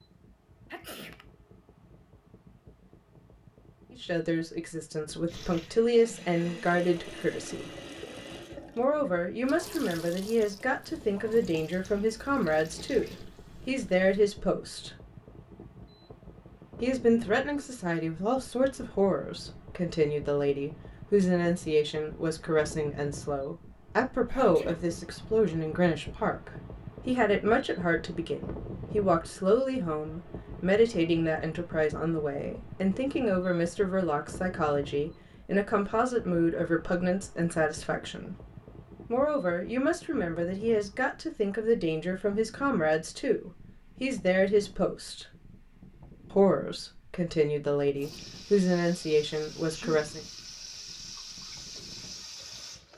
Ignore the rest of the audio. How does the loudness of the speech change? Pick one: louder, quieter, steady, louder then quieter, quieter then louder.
steady.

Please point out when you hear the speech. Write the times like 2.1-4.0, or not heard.
3.9-7.7, 8.8-14.9, 16.8-38.4, 39.1-45.2, 46.3-50.2.